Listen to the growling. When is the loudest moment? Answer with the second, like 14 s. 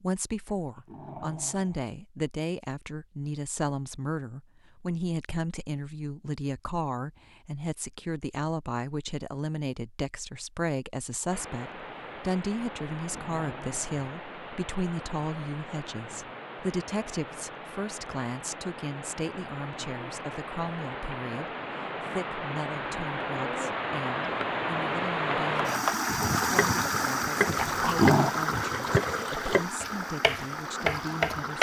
28 s.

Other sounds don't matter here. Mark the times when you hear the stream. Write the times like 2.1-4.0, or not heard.
11.3-31.5.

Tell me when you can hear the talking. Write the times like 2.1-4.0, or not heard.
0.0-31.5.